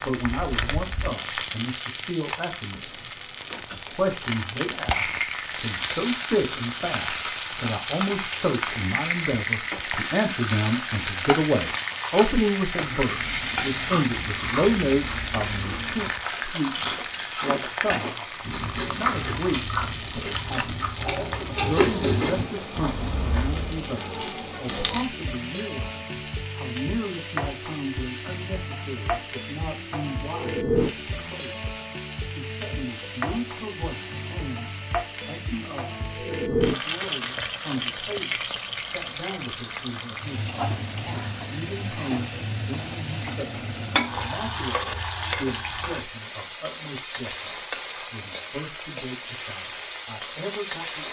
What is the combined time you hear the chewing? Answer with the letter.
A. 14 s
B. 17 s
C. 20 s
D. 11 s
D.